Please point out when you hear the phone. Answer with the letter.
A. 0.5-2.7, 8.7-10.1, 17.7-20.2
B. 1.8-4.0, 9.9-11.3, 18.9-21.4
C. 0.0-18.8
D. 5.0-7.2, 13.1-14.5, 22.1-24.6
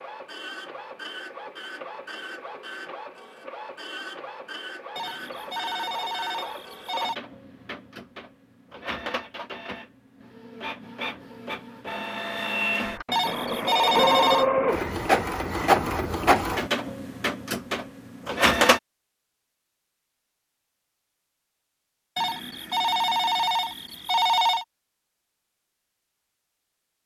D.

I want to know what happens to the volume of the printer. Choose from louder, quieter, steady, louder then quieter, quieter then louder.
louder.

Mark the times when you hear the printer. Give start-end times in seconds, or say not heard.
0.0-18.8.